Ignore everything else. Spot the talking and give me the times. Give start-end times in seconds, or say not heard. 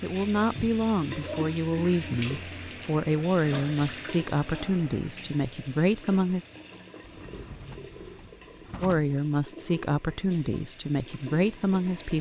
0.0-6.5, 8.8-12.1.